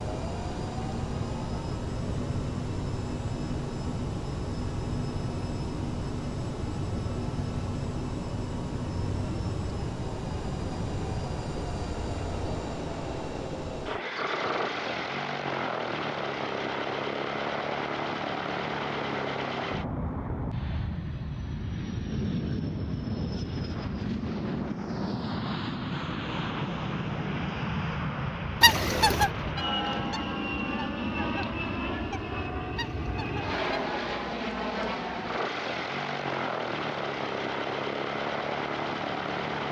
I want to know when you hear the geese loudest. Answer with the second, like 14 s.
29 s.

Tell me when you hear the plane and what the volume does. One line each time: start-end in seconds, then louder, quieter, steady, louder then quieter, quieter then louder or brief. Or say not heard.
0.0-39.6 steady.